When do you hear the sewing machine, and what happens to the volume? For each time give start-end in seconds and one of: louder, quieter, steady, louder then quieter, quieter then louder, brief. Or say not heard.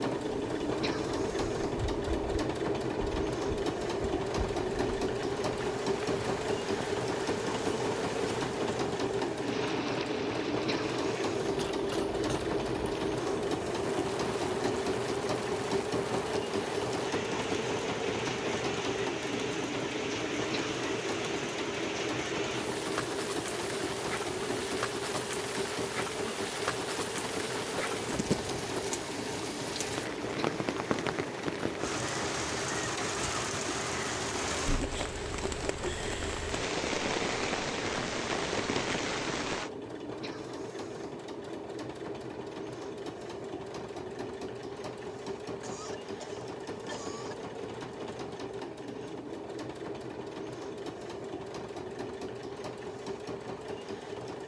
0.0-54.4 quieter.